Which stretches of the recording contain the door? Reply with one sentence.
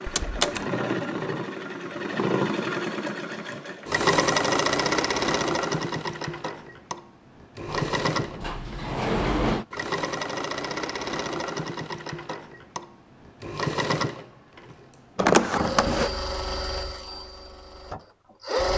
The door can be heard from 0.1 to 0.7 s, from 7.7 to 9.7 s and from 15.2 to 16.1 s.